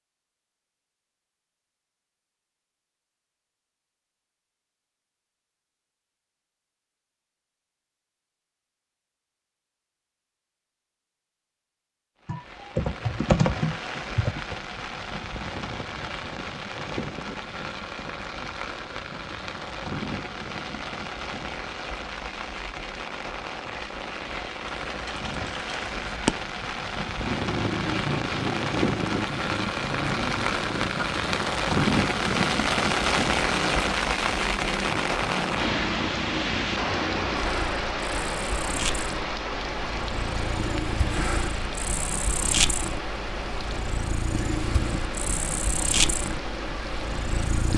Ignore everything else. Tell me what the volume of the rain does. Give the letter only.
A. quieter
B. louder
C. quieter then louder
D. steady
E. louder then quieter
E.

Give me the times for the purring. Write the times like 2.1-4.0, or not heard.
27.1-47.7.